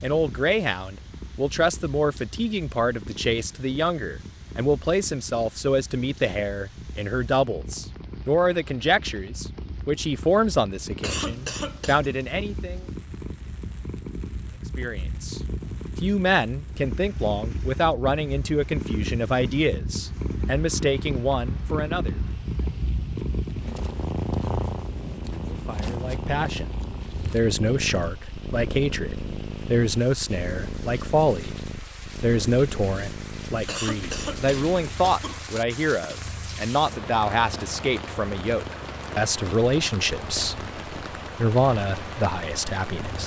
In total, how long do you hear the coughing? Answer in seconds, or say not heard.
3 s.